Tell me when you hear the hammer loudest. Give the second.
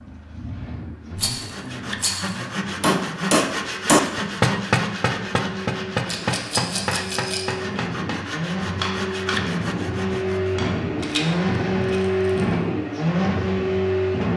4 s.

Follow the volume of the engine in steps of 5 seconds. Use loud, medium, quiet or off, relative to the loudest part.
quiet, medium, loud.